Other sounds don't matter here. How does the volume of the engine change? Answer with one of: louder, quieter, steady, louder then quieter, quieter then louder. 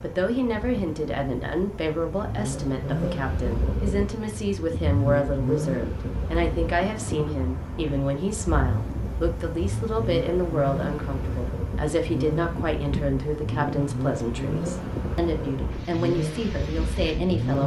steady.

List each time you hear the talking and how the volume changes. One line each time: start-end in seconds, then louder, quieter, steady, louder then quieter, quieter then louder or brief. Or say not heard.
0.0-17.6 steady.